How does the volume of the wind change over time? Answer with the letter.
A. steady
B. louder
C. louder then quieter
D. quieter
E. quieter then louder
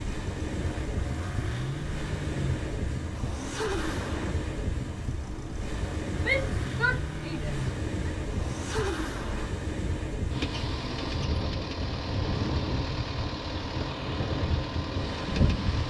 A.